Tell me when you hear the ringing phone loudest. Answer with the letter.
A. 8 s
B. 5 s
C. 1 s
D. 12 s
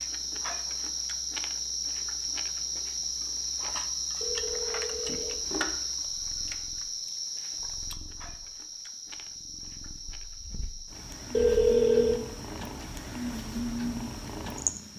D.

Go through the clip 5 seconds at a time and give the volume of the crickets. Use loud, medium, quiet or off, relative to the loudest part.
loud, loud, quiet.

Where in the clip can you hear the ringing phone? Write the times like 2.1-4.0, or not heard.
4.2-5.7, 11.3-12.2.